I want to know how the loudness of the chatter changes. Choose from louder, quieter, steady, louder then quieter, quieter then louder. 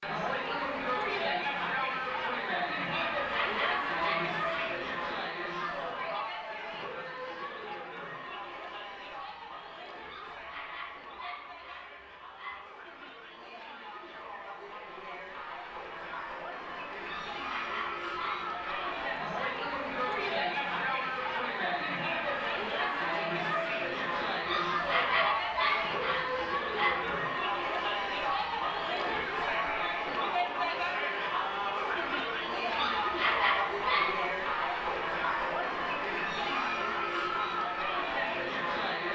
quieter then louder.